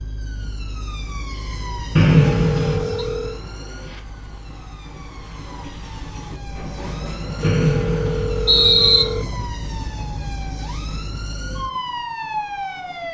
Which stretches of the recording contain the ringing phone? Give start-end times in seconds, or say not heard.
2.1-3.4, 7.4-9.4.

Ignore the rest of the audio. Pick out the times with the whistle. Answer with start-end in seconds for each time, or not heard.
1.9-3.0, 7.4-9.1.